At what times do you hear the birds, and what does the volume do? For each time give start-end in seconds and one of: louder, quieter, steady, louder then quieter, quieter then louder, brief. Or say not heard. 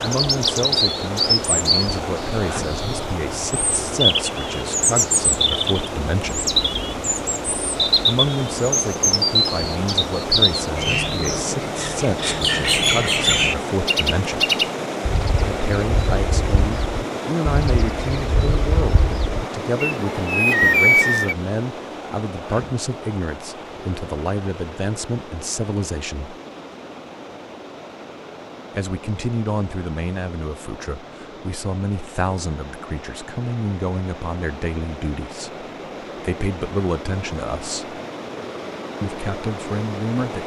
0.0-21.4 steady.